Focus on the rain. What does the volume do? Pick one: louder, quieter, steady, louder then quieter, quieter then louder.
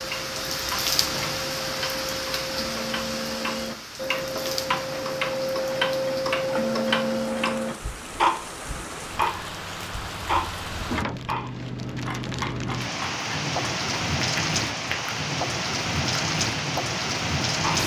quieter then louder.